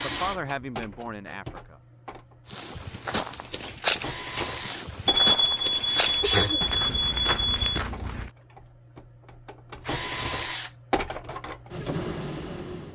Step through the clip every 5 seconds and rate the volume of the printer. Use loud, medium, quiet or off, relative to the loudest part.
medium, medium, loud.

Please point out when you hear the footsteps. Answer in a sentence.
The footsteps can be heard from 2.5 to 8.3 s.